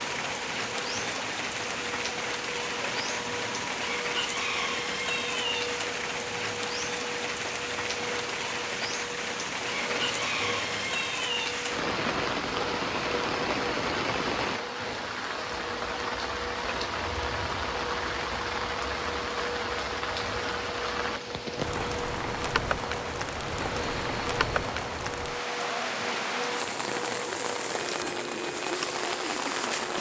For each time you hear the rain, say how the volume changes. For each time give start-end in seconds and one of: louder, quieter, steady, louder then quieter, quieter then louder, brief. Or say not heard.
0.0-29.9 steady.